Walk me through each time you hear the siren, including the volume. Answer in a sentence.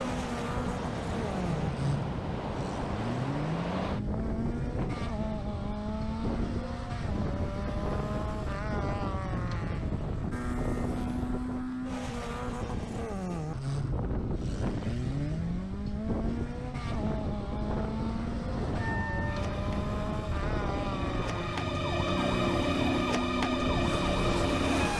You can hear the siren from 18.8 to 24.9 s, getting louder.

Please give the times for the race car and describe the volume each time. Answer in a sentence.
You can hear the race car from 0.0 to 24.9 s, at a steady volume.